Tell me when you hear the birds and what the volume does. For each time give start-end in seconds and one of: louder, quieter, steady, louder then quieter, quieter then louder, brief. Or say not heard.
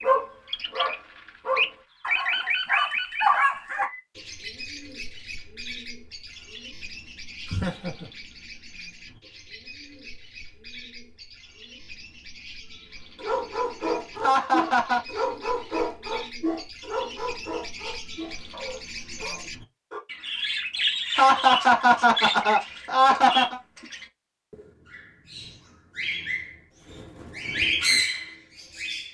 0.0-29.0 quieter then louder.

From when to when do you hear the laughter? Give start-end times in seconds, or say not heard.
7.5-8.1, 14.2-15.0, 21.1-23.6.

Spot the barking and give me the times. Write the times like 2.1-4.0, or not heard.
0.0-3.9, 13.2-20.0.